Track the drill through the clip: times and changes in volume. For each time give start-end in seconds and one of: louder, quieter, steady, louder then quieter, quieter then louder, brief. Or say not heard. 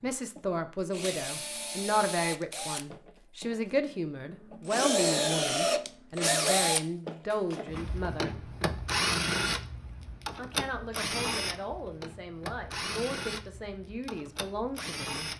0.0-15.3 louder then quieter.